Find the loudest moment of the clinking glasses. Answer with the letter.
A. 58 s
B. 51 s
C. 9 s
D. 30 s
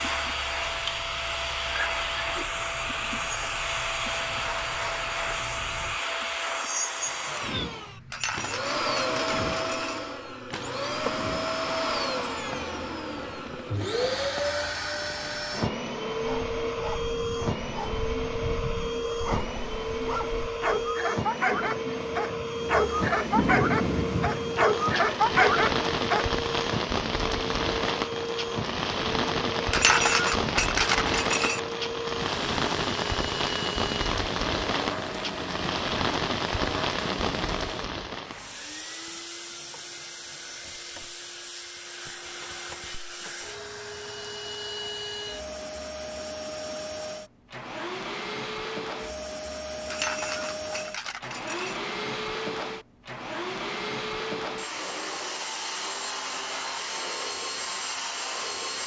D.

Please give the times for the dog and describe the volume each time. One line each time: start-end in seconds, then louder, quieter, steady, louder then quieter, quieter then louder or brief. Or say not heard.
16.1-26.4 louder.